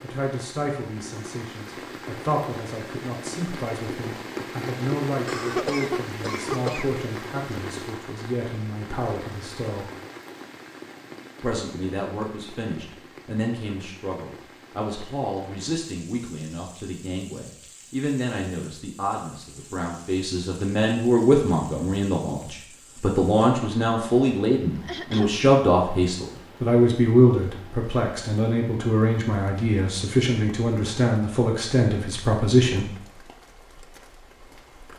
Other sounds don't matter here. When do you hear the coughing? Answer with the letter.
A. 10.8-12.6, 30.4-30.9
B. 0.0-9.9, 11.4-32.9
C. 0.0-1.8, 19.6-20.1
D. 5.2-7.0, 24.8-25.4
D.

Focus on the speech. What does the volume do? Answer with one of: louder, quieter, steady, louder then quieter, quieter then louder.
louder.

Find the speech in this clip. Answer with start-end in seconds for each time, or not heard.
0.0-9.9, 11.4-32.9.